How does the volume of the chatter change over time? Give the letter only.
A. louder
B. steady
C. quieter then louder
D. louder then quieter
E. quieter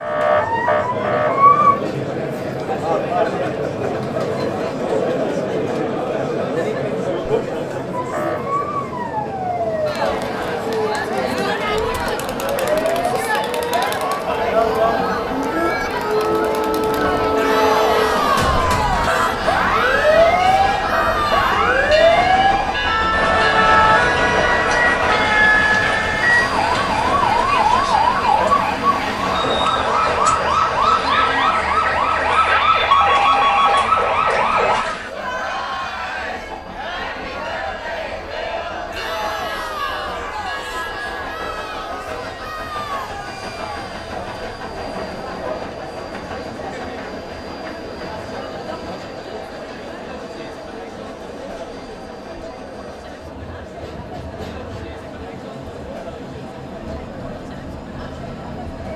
E.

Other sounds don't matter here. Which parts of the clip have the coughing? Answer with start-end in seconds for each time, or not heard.
not heard.